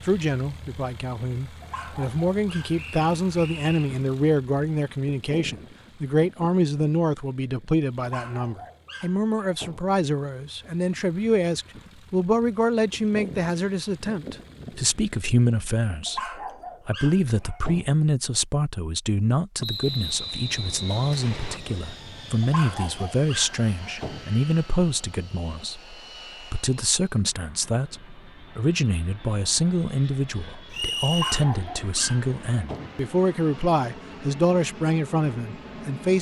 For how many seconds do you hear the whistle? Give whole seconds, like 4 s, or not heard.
4 s.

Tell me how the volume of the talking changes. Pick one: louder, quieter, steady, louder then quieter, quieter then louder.
steady.